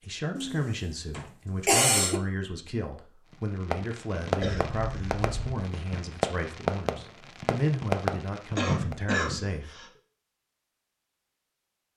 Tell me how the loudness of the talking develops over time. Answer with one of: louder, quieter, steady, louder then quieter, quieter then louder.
steady.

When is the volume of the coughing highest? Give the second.
2 s.